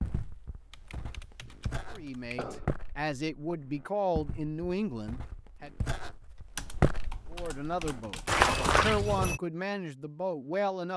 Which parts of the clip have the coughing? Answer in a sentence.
The coughing can be heard from 1.9 to 2.7 s.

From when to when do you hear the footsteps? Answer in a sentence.
You can hear the footsteps from 0.0 to 9.4 s.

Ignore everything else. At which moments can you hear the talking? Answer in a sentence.
The talking can be heard from 1.9 to 5.7 s and from 7.3 to 10.9 s.